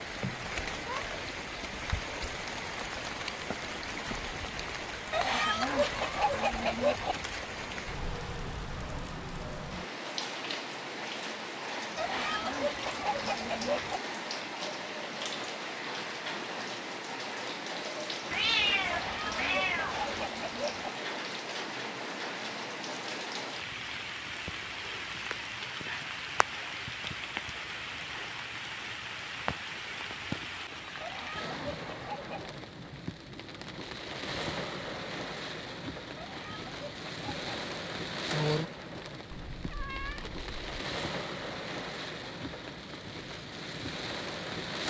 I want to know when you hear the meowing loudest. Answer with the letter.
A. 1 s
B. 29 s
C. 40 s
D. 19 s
D.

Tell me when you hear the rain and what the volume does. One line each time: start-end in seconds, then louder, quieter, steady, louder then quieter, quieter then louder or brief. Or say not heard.
0.0-44.8 steady.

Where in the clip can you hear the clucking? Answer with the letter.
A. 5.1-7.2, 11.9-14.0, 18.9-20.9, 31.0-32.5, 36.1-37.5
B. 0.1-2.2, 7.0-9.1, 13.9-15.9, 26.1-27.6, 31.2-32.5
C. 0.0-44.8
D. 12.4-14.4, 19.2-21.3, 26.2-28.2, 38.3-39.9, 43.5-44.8
A.